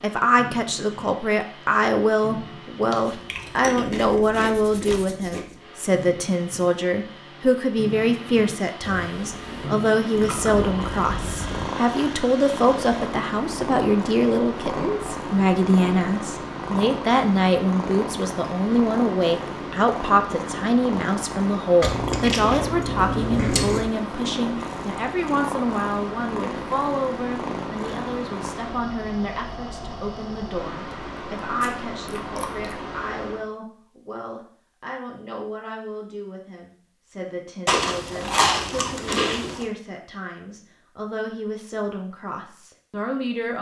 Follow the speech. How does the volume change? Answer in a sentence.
The volume of the speech goes down.